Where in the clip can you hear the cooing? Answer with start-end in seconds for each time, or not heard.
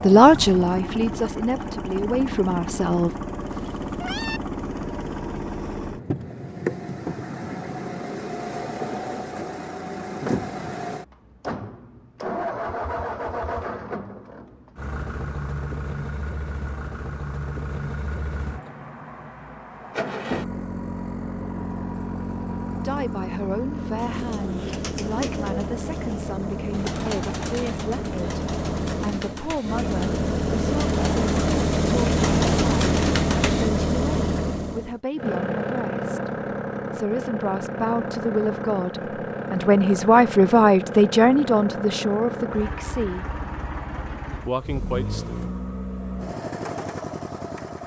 23.9-33.7.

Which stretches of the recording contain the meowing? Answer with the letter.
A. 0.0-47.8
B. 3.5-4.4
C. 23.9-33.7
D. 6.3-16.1
B.